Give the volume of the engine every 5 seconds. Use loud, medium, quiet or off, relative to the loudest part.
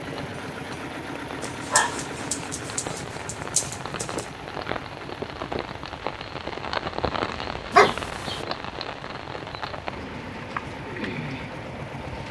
loud, medium, loud.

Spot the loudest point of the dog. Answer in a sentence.
The volume of the dog peaks at 8 seconds.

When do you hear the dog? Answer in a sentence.
The dog can be heard from 1.4 to 4.2 s and from 7.7 to 8.4 s.